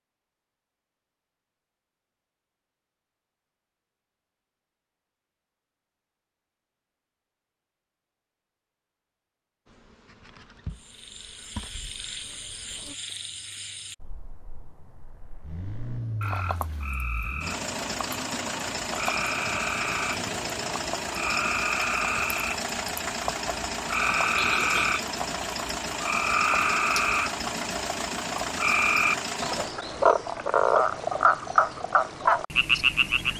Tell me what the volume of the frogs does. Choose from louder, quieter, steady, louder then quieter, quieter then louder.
louder.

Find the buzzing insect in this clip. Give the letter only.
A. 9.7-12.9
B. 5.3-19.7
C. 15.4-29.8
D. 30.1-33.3
A.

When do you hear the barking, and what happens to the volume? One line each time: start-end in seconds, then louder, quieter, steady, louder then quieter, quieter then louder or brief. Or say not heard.
not heard.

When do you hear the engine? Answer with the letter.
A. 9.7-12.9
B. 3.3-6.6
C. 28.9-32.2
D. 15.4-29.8
D.